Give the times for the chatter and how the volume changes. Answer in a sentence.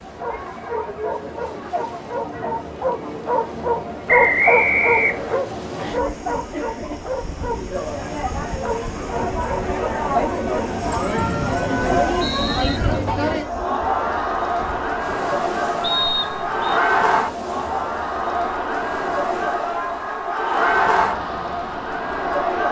You can hear the chatter from 0.0 to 22.6 s, getting louder.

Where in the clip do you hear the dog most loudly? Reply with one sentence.
The volume of the dog peaks at 4 seconds.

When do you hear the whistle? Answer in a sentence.
You can hear the whistle from 4.0 to 5.4 s, from 11.2 to 12.8 s and from 15.8 to 16.8 s.